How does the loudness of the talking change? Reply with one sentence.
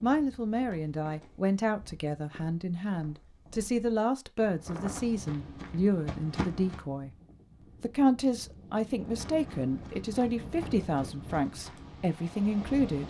The volume of the talking stays about the same.